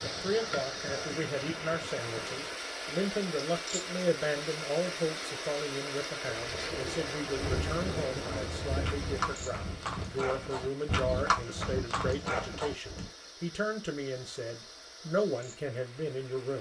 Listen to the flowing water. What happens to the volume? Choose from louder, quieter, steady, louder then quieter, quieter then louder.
quieter.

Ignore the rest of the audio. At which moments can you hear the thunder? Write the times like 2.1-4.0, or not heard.
6.2-9.9.